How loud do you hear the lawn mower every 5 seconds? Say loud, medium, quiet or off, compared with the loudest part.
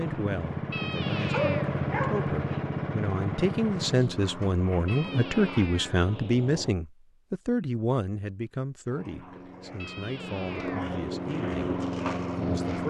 loud, medium, loud.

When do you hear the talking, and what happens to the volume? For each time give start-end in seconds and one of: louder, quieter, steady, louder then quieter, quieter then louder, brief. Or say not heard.
0.0-12.8 louder then quieter.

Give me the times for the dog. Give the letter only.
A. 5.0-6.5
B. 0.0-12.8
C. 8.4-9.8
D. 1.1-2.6
D.